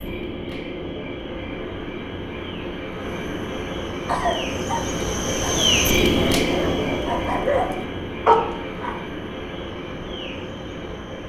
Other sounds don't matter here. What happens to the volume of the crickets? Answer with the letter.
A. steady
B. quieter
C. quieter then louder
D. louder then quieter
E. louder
D.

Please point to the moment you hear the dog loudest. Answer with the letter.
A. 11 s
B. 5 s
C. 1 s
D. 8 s
D.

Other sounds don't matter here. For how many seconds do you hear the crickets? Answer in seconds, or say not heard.
11 s.